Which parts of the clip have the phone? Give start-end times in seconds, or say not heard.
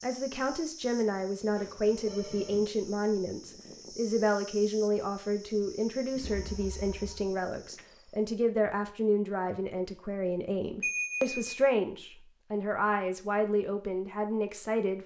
1.6-2.6, 6.2-7.3, 10.8-11.4.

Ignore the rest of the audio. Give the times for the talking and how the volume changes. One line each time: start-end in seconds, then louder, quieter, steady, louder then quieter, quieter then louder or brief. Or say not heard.
0.0-15.0 steady.